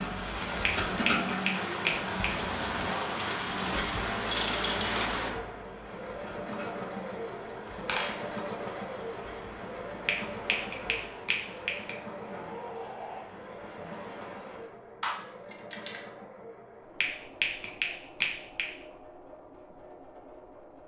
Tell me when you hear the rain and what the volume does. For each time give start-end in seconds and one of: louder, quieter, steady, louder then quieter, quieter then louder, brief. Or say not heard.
0.0-14.8 quieter.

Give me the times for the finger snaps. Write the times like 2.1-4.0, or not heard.
0.7-2.5, 10.1-11.9, 17.0-18.7.